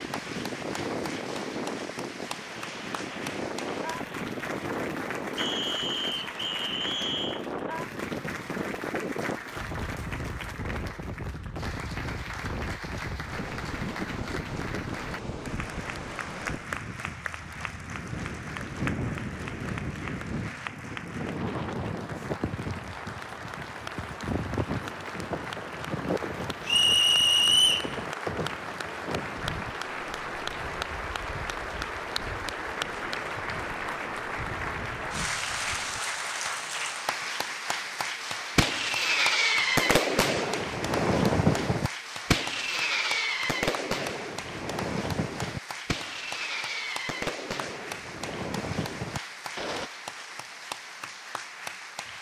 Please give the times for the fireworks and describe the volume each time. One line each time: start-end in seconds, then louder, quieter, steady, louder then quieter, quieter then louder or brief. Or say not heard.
38.5-49.9 quieter.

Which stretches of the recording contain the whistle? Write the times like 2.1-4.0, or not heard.
5.3-7.5, 26.6-27.9.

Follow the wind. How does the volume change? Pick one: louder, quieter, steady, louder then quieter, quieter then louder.
quieter.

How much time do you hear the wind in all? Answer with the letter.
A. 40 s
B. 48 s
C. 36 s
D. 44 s
C.